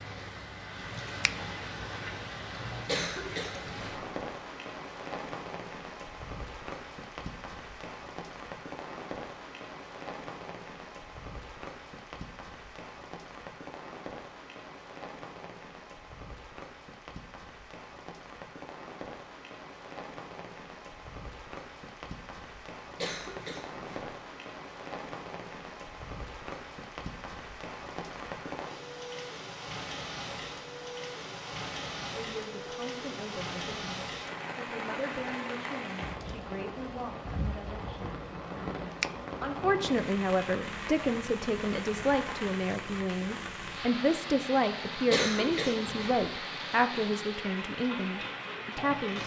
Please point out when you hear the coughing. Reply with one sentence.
The coughing can be heard from 2.9 to 4.0 s, from 22.9 to 24.1 s and from 45.1 to 46.2 s.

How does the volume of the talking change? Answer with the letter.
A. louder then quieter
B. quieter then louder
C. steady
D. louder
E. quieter
D.